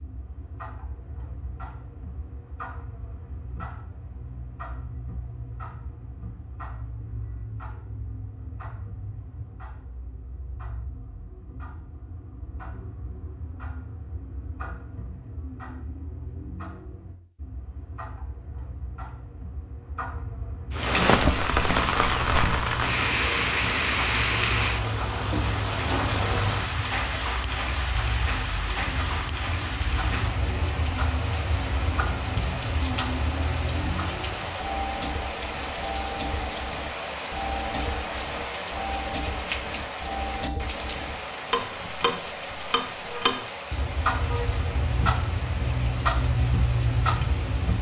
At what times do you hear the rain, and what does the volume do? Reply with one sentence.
The rain can be heard from 20.7 to 47.7 s, getting quieter.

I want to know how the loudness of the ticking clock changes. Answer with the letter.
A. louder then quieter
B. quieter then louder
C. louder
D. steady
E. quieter
C.